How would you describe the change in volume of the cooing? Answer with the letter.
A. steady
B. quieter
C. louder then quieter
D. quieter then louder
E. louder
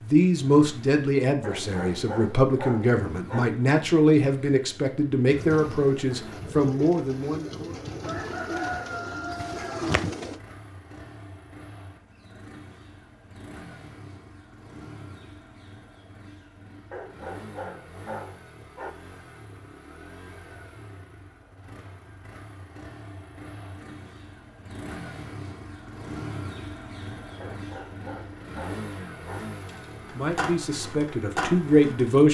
E.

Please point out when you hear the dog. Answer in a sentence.
You can hear the dog from 1.4 to 3.5 s, from 16.9 to 18.9 s and from 27.4 to 29.4 s.